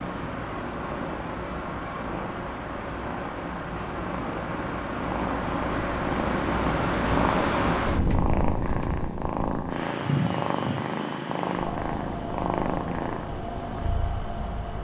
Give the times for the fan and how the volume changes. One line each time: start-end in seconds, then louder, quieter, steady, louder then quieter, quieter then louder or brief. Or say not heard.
0.0-14.7 louder then quieter.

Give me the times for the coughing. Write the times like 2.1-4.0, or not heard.
not heard.